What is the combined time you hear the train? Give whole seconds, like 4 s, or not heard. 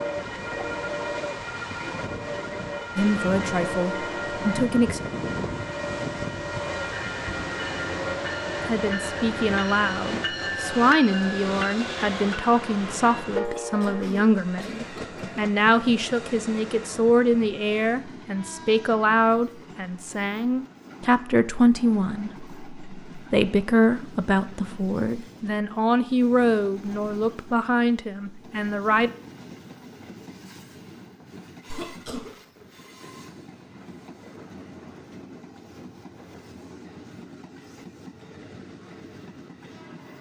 40 s.